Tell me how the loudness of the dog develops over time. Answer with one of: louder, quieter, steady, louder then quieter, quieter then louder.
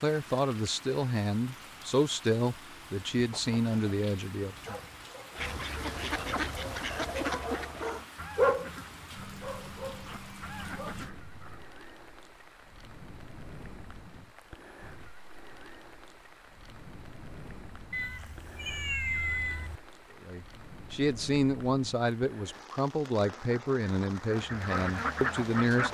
louder then quieter.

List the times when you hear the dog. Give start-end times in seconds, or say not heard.
4.7-10.9.